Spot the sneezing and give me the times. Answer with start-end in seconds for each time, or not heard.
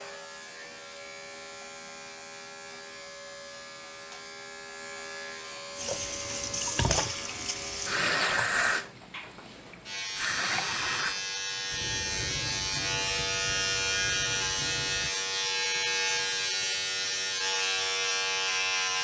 not heard.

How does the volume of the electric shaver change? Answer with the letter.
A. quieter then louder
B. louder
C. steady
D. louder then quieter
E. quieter
B.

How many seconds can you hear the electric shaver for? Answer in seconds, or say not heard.
19 s.